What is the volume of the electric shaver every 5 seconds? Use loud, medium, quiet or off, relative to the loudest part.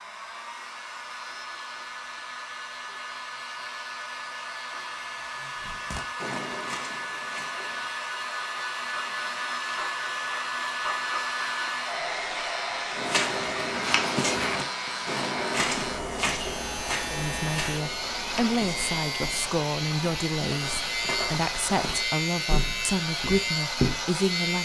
quiet, quiet, medium, loud, loud.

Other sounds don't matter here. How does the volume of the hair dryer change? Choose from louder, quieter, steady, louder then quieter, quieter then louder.
louder then quieter.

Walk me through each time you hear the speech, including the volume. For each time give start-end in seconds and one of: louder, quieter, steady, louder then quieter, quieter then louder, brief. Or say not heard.
17.1-24.6 steady.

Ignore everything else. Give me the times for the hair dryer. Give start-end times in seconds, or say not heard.
0.0-24.6.